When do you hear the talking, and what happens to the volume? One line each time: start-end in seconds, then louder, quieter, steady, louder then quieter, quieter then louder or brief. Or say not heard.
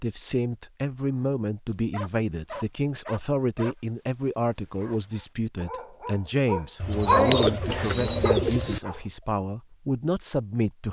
0.0-10.8 steady.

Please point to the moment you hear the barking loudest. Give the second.
7 s.